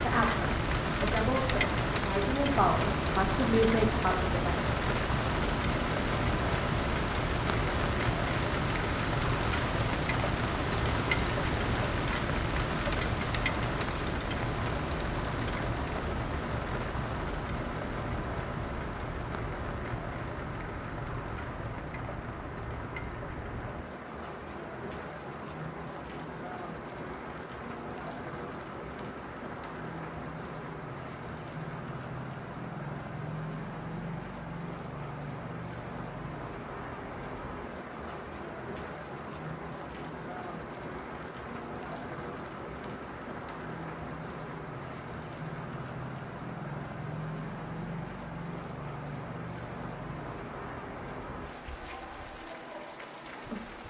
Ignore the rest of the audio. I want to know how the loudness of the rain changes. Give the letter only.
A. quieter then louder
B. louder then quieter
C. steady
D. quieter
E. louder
D.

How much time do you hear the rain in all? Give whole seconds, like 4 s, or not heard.
54 s.